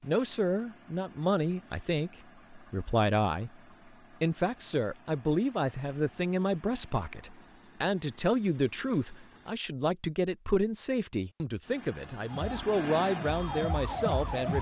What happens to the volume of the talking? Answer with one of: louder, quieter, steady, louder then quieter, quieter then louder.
steady.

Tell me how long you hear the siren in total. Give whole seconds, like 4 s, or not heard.
2 s.